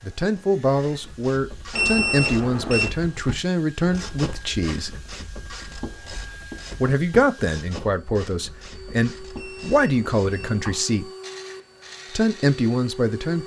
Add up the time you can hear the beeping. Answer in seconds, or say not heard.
3 s.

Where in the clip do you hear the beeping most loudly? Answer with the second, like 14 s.
2 s.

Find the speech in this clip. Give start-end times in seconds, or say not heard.
0.0-5.0, 6.8-11.1, 12.2-13.4.